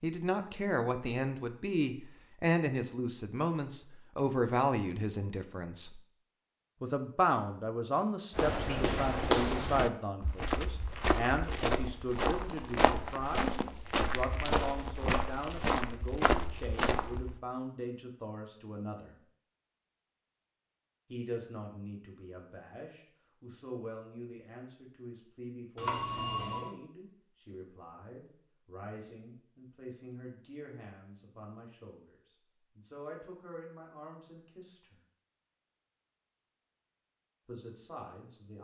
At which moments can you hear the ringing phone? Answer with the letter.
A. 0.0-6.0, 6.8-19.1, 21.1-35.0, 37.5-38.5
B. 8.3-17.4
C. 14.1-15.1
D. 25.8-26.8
D.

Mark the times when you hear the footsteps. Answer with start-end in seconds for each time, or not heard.
8.3-17.4.